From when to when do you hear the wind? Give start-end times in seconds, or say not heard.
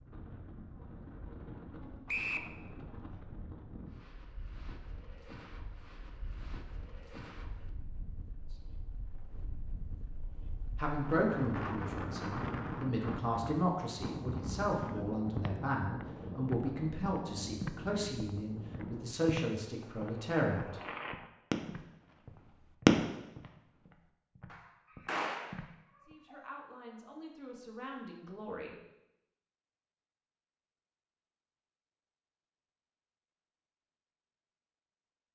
0.0-19.2.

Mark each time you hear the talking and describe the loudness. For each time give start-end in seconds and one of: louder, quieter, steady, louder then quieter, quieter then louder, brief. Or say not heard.
10.8-20.8 steady
26.1-28.8 brief.